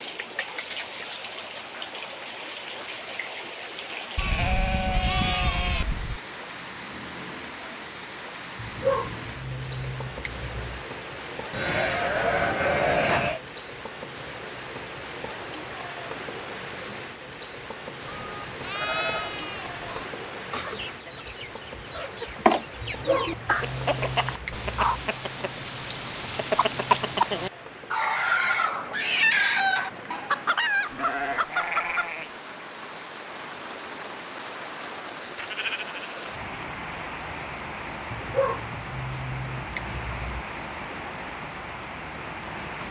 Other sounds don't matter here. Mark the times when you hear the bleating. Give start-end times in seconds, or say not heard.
4.2-6.2, 11.5-13.4, 18.1-20.1, 30.9-32.4, 35.4-37.4.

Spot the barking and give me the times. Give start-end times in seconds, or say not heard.
8.6-10.8, 22.8-25.1, 38.1-40.5.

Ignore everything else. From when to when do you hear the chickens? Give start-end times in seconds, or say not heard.
20.5-32.1.